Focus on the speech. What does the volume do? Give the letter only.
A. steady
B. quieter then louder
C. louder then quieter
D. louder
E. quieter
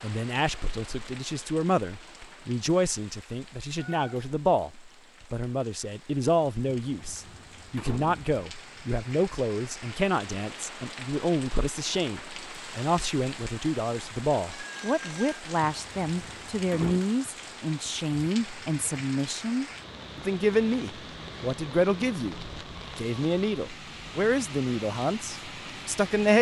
A.